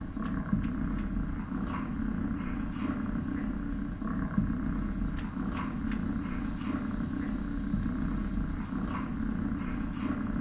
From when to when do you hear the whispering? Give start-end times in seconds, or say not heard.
not heard.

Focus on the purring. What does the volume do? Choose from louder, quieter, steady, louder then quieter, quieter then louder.
steady.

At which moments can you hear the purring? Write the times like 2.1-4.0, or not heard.
0.0-10.3.